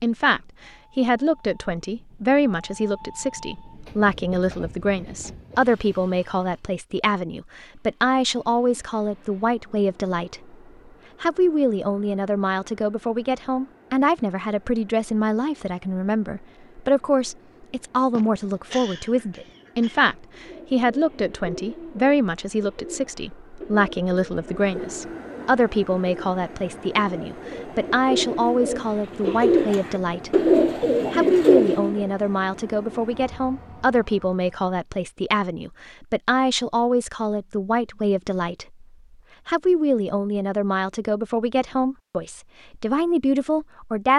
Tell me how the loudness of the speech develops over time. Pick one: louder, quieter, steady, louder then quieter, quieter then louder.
steady.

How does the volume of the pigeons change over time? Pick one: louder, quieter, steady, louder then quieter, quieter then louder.
louder.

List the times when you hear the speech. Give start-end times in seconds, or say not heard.
0.0-10.6, 11.2-30.5, 31.1-38.9, 39.5-44.1.